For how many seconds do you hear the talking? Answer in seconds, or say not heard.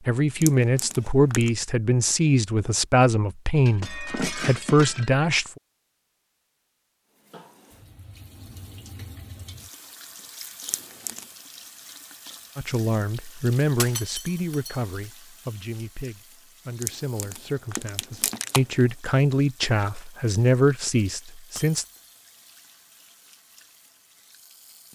15 s.